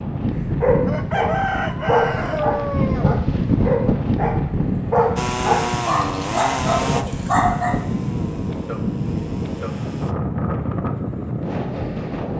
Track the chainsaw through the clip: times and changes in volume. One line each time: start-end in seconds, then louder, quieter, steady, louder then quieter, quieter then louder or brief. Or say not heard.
5.2-10.2 quieter.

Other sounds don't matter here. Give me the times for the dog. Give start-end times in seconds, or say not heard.
0.6-7.8.